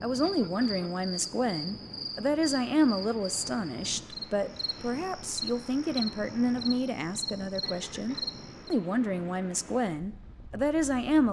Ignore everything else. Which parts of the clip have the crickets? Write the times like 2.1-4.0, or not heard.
0.0-8.8.